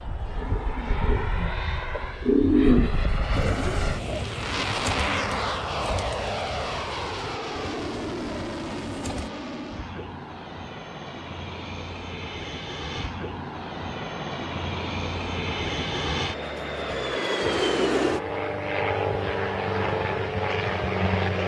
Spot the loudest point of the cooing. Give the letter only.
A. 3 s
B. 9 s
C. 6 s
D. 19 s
A.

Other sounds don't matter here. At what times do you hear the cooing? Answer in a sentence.
You can hear the cooing from 0.2 to 9.3 s.